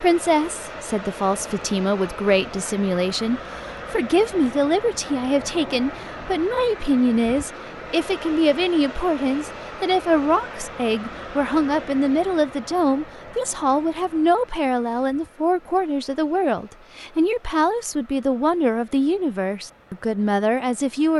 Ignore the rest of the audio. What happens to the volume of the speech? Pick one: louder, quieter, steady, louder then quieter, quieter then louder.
steady.